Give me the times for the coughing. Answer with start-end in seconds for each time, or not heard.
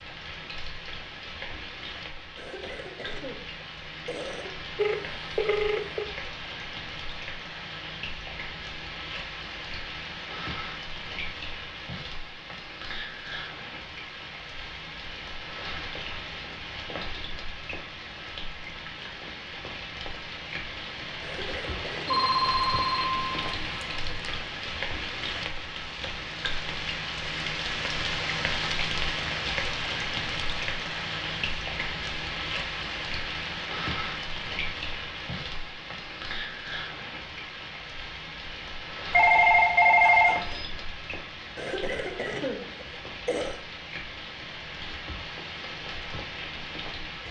2.4-4.5, 21.2-22.4, 41.5-43.6.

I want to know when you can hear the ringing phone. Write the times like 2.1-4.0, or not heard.
4.8-6.1, 22.1-24.4, 39.1-40.6.